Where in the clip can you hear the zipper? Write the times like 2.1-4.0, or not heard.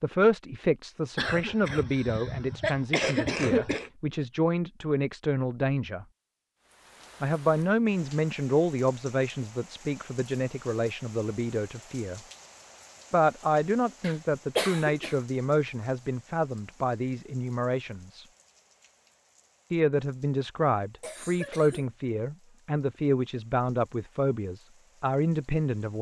not heard.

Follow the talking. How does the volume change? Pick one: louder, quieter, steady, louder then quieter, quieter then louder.
steady.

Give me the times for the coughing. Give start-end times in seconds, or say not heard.
1.1-3.9, 14.0-15.2, 21.0-21.9.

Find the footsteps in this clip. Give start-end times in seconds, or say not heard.
not heard.